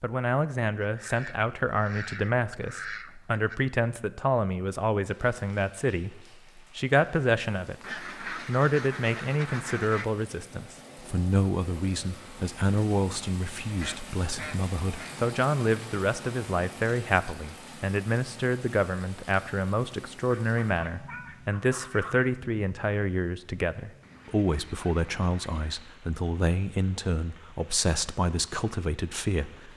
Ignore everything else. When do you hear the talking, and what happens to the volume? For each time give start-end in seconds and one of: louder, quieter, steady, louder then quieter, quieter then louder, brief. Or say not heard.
0.0-29.7 steady.